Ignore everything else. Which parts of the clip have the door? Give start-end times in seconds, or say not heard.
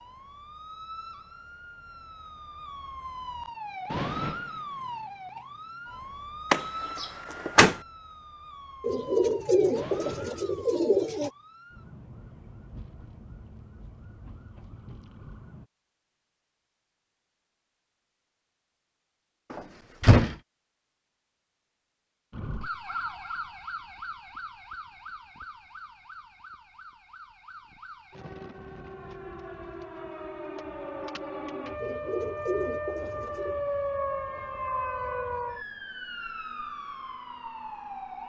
6.5-7.8, 19.5-20.4.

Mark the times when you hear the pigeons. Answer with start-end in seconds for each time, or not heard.
8.8-11.3, 31.8-33.6.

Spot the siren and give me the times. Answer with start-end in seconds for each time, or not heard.
0.0-15.7, 22.3-38.2.